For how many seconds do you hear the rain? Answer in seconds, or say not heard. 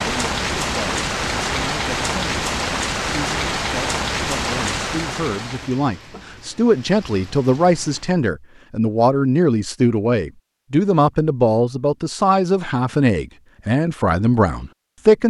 8 s.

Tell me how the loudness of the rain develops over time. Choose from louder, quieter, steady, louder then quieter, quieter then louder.
quieter.